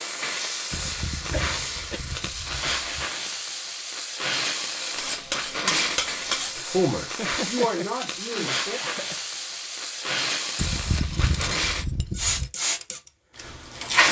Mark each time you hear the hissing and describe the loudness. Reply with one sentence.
The hissing can be heard from 0.0 to 14.0 s, at a steady volume.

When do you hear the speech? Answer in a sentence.
You can hear the speech from 6.7 to 8.8 s.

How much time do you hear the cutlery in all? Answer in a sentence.
You can hear the cutlery for 6 seconds altogether.